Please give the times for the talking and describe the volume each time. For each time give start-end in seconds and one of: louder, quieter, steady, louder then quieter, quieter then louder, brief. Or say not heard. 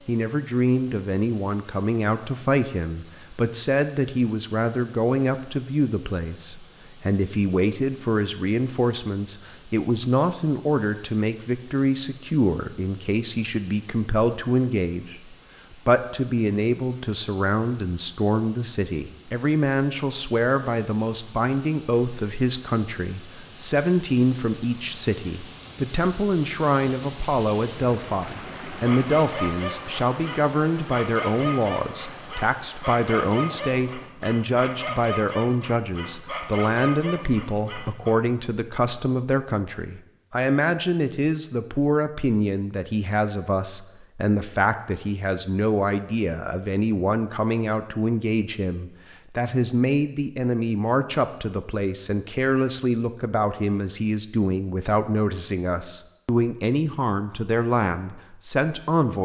0.1-59.2 steady.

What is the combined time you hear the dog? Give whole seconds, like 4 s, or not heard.
9 s.